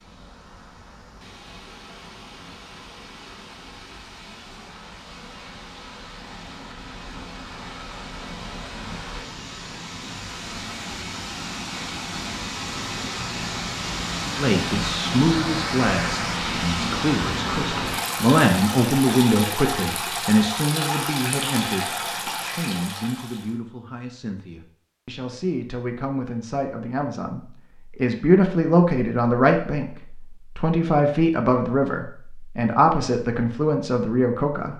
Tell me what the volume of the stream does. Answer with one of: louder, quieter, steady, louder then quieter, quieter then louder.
louder.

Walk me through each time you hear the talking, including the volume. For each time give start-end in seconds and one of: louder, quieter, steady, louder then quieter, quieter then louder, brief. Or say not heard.
14.3-34.7 quieter then louder.